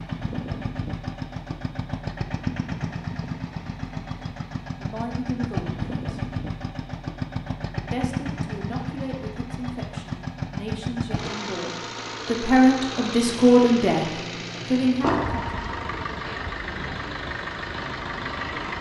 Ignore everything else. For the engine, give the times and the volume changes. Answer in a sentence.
You can hear the engine from 0.0 to 18.7 s, at a steady volume.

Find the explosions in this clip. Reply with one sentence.
The explosions can be heard from 15.0 to 15.4 s.